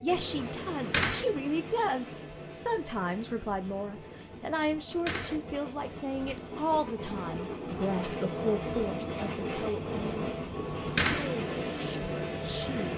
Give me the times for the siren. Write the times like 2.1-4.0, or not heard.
not heard.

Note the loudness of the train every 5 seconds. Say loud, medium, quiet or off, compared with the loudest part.
medium, loud, loud.